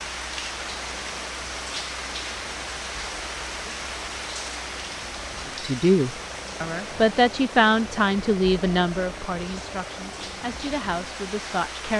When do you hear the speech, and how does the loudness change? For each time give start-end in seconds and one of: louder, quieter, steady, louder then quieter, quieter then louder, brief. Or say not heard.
5.5-11.9 quieter.